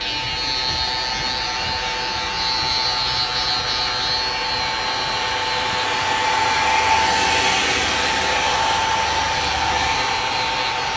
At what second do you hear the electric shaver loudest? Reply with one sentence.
The loudest moment of the electric shaver is at 3 seconds.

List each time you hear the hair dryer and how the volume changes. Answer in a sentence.
The hair dryer can be heard from 0.0 to 10.9 s, getting louder.